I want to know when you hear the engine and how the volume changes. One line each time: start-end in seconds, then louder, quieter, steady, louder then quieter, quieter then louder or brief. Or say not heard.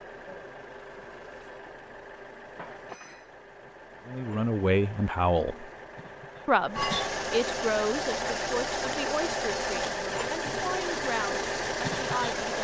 0.0-12.6 louder.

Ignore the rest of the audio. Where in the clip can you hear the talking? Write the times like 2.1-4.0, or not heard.
4.0-5.7, 6.5-12.6.